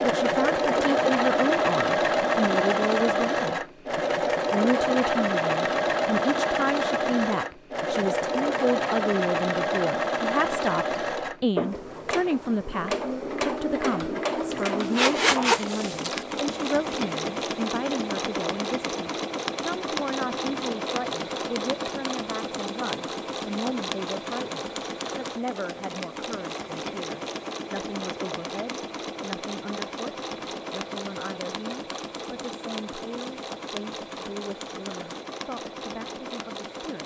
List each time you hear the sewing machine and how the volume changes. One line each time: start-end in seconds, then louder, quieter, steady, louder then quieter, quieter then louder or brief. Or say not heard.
0.0-37.0 quieter.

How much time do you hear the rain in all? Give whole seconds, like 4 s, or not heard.
not heard.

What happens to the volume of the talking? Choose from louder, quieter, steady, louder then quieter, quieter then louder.
quieter.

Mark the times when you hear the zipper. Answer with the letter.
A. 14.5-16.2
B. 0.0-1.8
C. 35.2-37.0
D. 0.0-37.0
A.